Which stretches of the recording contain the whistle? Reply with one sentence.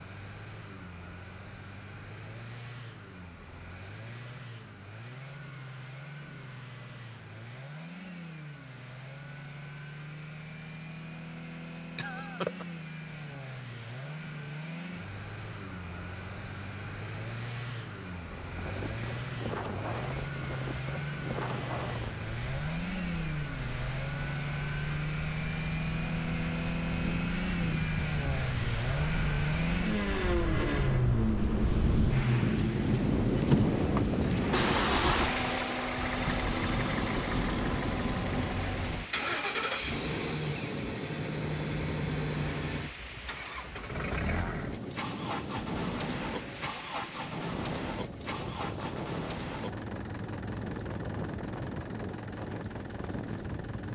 You can't hear the whistle here.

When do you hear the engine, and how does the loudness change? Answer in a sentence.
You can hear the engine from 0.0 to 53.9 s, getting louder then quieter.